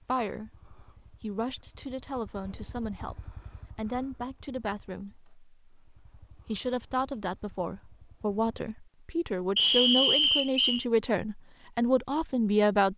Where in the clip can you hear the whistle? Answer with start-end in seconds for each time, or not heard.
9.6-10.8.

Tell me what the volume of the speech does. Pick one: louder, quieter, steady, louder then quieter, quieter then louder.
louder.